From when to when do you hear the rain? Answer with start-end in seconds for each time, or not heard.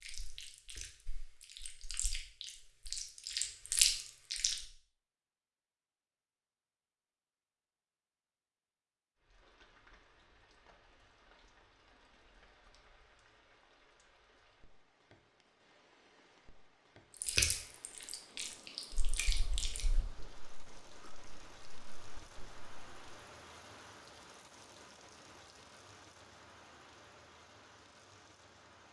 9.2-28.8.